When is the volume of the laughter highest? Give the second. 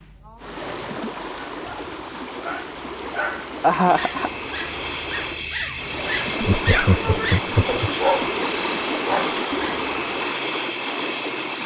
4 s.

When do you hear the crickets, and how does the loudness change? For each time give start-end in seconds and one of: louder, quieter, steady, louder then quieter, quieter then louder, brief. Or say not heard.
0.0-11.6 louder.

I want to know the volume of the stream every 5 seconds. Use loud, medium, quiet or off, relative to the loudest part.
medium, loud, loud.